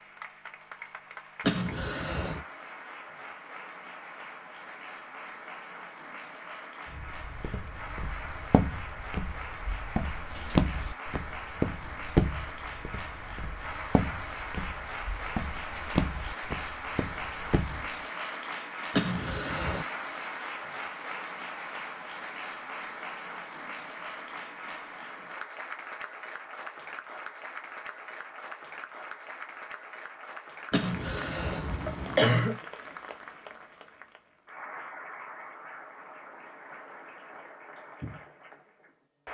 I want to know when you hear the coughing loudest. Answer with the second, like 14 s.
32 s.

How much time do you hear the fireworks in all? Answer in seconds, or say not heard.
not heard.